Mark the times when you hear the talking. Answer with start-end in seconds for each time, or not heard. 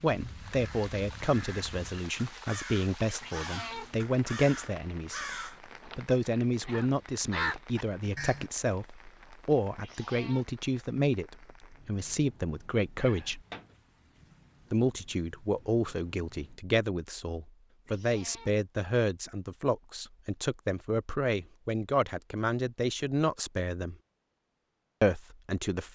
0.0-5.2, 5.8-13.4, 14.7-23.9, 25.0-25.8.